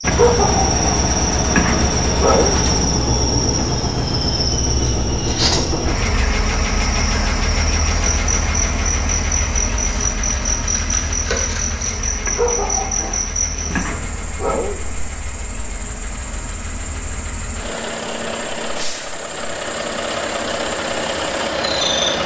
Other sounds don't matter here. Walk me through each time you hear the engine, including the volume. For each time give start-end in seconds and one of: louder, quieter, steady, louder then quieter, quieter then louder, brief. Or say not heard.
0.0-22.2 quieter then louder.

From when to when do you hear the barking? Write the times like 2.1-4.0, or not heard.
0.1-2.6, 12.2-14.8.